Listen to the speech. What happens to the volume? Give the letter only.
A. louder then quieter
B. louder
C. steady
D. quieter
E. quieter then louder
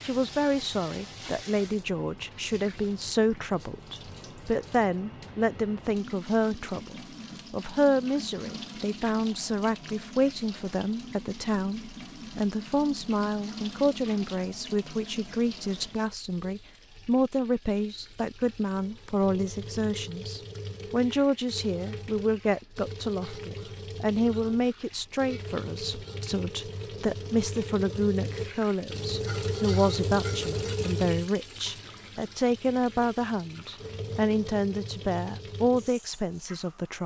C.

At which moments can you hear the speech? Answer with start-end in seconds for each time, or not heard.
0.0-37.0.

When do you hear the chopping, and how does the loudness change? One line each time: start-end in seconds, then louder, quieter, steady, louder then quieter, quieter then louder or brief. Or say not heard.
not heard.